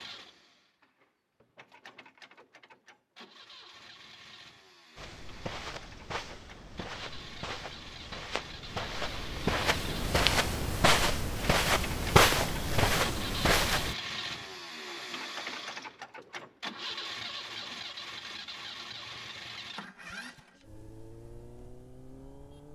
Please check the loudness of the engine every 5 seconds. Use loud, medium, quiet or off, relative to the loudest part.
quiet, medium, loud, loud, medium.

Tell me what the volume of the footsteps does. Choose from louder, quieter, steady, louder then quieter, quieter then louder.
louder.